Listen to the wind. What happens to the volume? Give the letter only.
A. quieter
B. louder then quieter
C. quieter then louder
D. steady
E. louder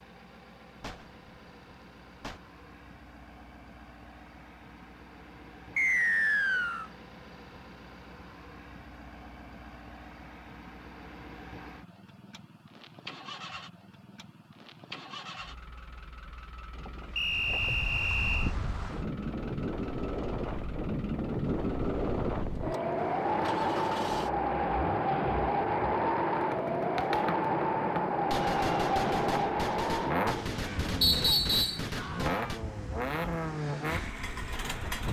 B.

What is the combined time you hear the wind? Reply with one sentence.
You can hear the wind for 18 seconds altogether.